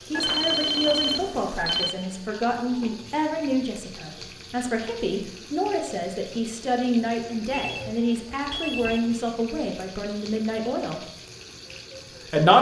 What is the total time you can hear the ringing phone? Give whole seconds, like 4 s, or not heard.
3 s.